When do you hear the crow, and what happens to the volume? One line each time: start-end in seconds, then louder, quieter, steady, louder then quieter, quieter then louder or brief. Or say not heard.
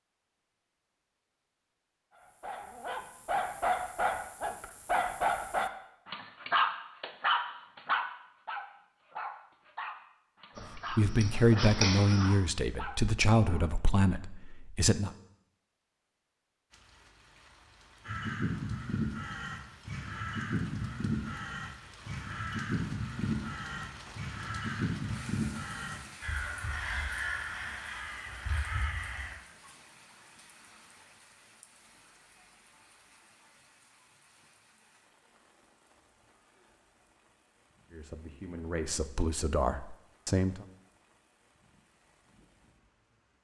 10.6-12.3 brief
18.1-29.4 steady.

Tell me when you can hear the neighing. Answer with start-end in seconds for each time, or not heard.
not heard.